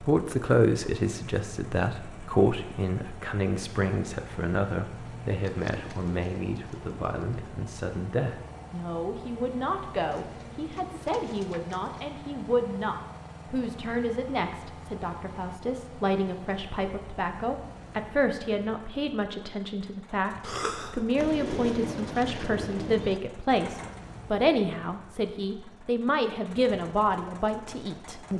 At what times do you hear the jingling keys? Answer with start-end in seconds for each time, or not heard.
not heard.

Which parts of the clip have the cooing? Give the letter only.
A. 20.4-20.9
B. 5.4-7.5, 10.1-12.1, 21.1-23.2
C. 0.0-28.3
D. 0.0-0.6
B.